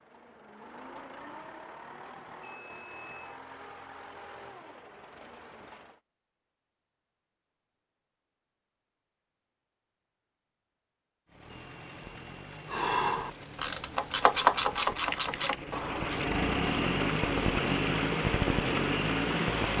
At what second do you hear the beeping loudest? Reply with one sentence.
The volume of the beeping peaks at 3 seconds.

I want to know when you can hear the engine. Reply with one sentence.
You can hear the engine from 0.0 to 6.0 s and from 11.2 to 19.7 s.